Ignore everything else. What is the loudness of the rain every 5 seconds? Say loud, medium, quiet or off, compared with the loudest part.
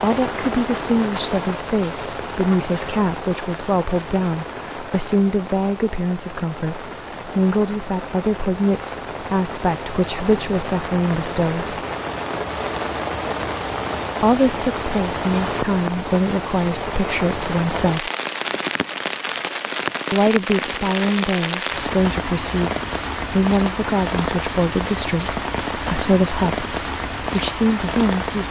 loud, medium, loud, loud, loud, loud.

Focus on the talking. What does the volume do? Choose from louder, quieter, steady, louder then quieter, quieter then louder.
steady.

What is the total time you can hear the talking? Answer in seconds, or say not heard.
24 s.